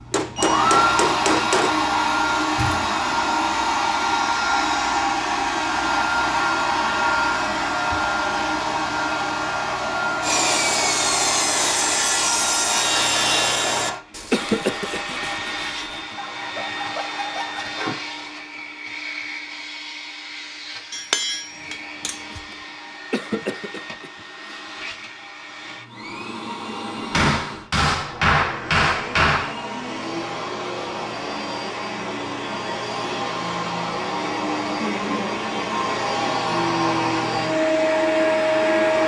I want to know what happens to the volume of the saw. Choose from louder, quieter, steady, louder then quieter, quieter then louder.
quieter then louder.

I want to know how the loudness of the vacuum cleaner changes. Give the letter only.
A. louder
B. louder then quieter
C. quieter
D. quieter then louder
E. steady
D.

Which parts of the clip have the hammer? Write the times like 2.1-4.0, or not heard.
0.1-1.8, 20.9-22.4, 27.1-29.6.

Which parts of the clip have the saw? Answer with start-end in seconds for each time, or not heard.
10.2-18.0.